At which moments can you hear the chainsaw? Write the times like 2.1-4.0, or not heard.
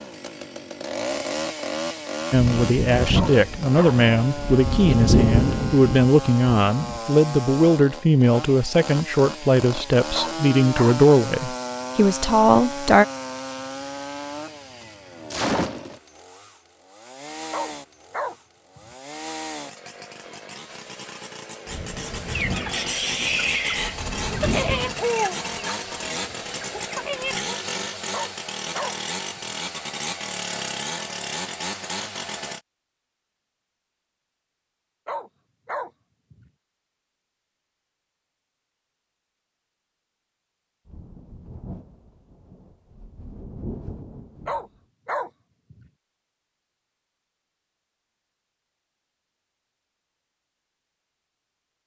0.0-32.6.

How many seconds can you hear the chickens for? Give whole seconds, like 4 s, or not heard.
5 s.